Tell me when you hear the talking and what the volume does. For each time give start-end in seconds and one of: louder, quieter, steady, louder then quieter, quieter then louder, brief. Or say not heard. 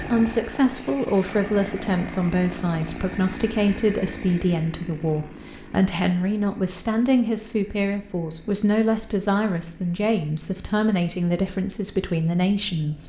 0.0-13.0 steady.